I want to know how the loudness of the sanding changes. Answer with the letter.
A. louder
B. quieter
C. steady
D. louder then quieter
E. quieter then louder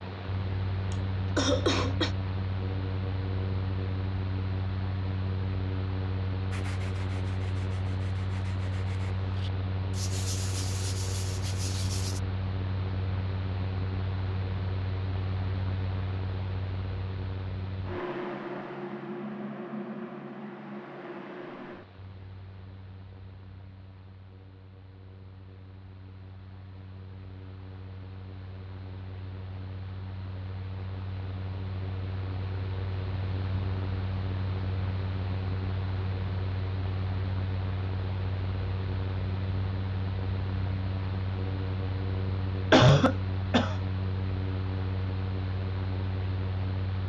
A.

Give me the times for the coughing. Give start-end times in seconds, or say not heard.
0.9-2.1, 42.7-43.8.